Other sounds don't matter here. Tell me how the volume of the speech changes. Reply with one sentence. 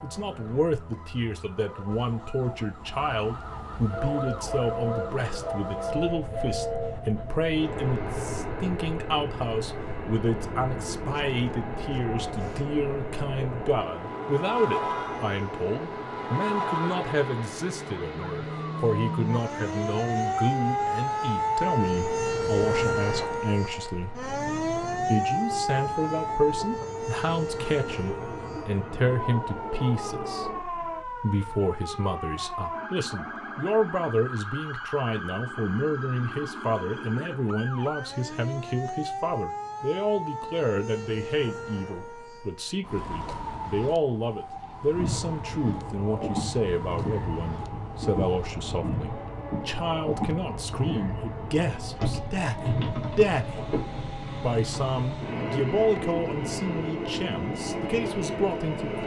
The loudness of the speech stays about the same.